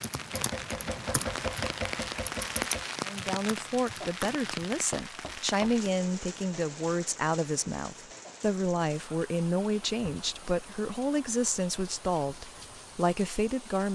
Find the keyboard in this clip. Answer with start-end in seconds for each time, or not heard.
0.0-4.6.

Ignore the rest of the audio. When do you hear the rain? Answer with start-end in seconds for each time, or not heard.
0.0-13.9.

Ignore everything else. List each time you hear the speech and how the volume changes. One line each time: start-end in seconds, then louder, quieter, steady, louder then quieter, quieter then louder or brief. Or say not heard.
3.0-13.9 steady.